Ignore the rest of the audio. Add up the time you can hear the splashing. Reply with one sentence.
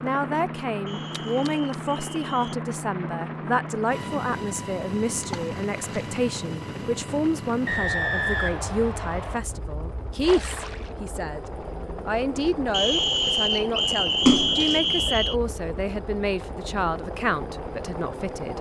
The splashing can be heard for 3 seconds in total.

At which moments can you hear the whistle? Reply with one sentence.
The whistle can be heard from 0.8 to 2.5 s, from 7.7 to 9.4 s and from 12.7 to 15.3 s.